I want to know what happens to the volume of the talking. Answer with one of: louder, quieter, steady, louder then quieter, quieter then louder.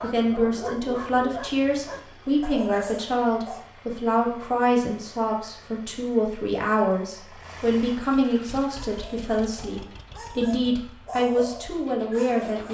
steady.